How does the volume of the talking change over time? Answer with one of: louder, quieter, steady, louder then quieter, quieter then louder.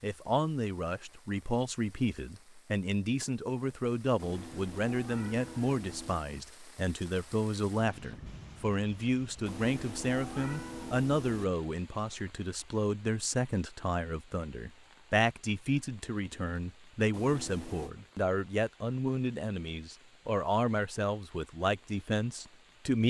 steady.